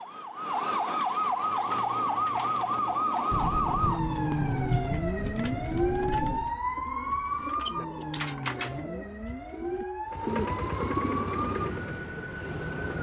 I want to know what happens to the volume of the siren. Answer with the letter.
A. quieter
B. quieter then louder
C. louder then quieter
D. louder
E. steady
A.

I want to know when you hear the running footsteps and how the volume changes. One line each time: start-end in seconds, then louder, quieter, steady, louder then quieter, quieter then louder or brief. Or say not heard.
not heard.